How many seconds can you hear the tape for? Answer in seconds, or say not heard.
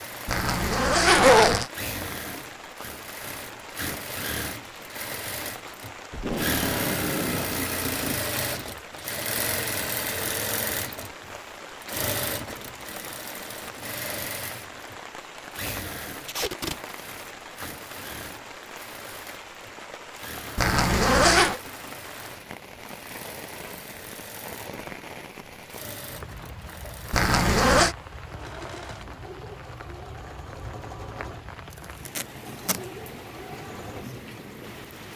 3 s.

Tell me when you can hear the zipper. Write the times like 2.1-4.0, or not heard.
0.2-1.7, 20.6-21.6, 27.1-27.9.